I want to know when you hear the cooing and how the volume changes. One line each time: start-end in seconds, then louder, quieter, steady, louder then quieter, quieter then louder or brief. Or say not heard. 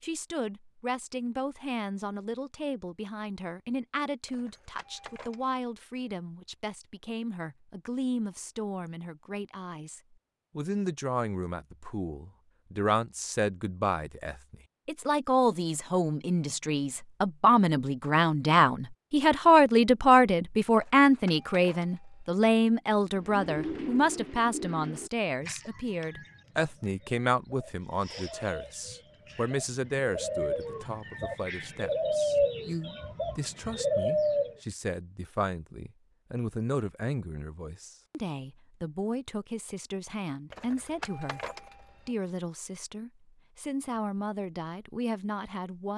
23.1-34.5 quieter then louder.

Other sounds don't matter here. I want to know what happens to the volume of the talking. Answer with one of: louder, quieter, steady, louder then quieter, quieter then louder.
louder then quieter.